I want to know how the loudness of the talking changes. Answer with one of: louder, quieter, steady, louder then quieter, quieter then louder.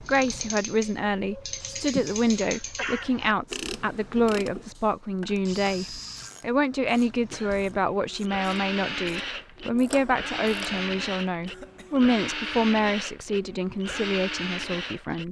steady.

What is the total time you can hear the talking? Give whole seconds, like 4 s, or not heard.
15 s.